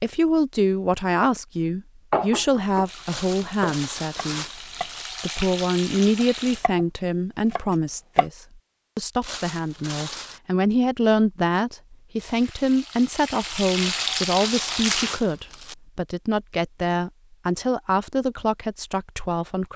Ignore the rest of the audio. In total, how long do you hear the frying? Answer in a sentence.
The frying can be heard for 7 seconds in total.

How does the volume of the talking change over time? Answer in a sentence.
The volume of the talking stays about the same.